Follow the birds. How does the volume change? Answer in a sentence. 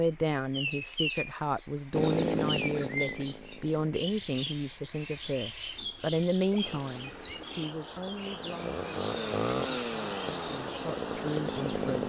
The loudness of the birds goes down.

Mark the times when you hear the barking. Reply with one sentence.
The barking can't be heard in this clip.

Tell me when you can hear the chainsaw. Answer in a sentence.
You can hear the chainsaw from 1.9 to 3.9 s and from 6.6 to 12.0 s.